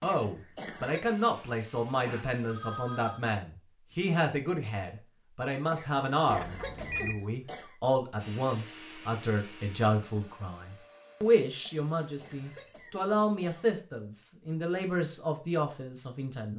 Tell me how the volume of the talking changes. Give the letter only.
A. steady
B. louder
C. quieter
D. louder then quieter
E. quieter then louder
A.